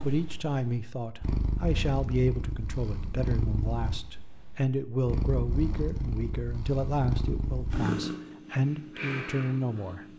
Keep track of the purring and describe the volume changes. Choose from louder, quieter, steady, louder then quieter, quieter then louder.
steady.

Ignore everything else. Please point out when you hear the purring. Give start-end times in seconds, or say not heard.
0.0-10.1.